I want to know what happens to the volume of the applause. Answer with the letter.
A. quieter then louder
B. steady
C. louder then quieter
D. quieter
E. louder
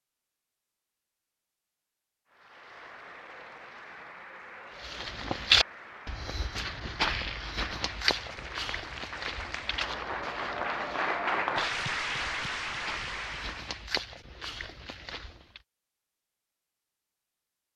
E.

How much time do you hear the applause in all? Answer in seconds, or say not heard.
12 s.